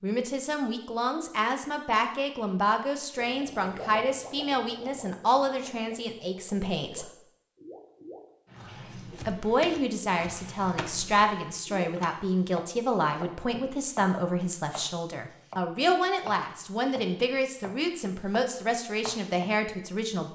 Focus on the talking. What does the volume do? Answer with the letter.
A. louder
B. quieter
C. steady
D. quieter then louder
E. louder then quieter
C.